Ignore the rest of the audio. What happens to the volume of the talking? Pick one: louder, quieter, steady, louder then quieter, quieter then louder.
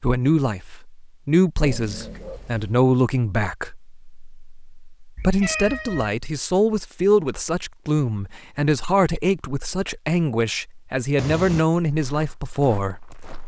steady.